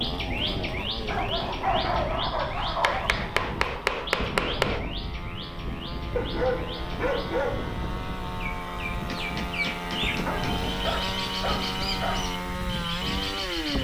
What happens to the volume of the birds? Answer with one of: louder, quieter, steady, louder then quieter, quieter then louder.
quieter then louder.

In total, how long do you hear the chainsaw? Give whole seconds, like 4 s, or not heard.
14 s.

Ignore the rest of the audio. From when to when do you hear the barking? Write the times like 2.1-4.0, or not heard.
1.1-3.1, 6.2-7.7, 10.2-12.2.